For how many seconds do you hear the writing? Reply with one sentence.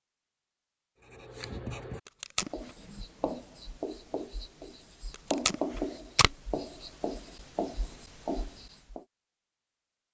The writing can be heard for 8 seconds in total.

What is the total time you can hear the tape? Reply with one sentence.
The tape can be heard for 2 seconds in total.